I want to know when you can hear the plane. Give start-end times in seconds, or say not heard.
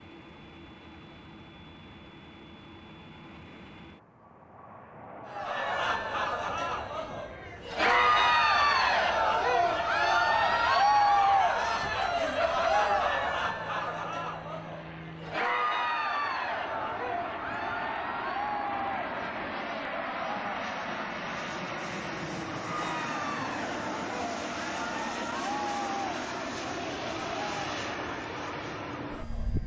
0.0-29.6.